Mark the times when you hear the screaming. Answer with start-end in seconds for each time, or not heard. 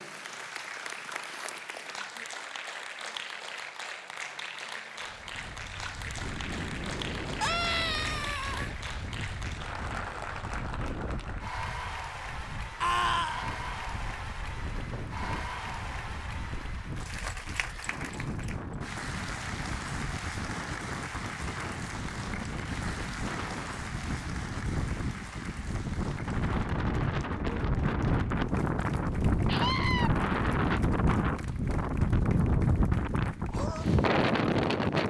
7.4-8.8, 12.8-13.4, 29.4-30.1.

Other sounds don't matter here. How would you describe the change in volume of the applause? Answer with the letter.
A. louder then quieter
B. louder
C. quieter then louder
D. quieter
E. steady
D.